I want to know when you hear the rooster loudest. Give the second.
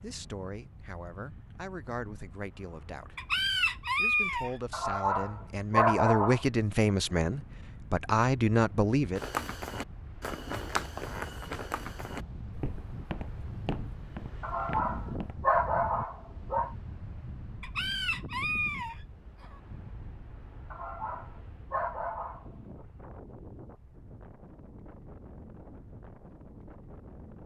4 s.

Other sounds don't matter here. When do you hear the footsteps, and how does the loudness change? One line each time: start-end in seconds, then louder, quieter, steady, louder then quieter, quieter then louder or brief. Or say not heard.
9.2-15.3 quieter.